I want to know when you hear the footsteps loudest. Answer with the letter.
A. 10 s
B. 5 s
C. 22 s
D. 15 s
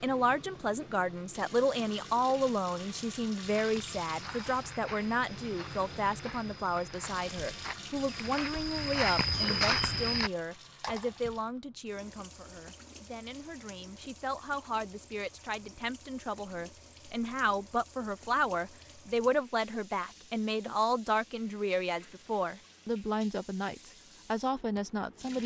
A.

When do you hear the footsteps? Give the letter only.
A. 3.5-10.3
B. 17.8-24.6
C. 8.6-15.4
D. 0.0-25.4
A.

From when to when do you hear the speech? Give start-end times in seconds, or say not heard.
0.0-25.4.